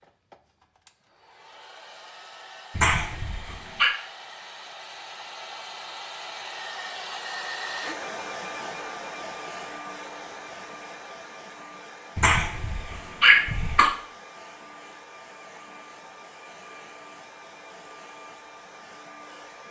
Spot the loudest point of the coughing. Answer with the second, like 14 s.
13 s.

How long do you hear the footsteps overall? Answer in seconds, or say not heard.
not heard.